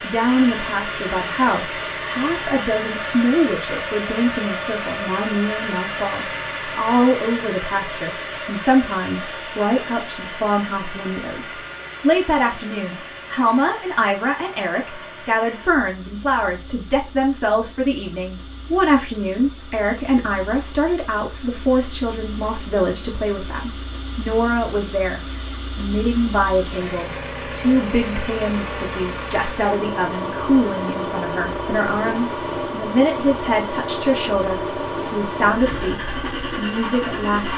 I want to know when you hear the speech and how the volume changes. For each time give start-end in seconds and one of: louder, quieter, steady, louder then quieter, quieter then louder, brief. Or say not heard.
0.0-37.5 steady.